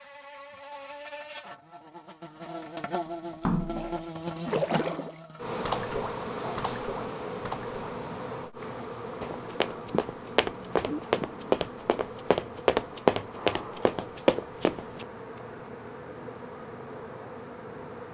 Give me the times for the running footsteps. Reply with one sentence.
The running footsteps can be heard from 9.2 to 15.1 s.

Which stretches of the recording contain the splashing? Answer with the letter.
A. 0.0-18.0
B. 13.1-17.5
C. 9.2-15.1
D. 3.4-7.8
D.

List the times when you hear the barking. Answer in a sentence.
You can't hear the barking here.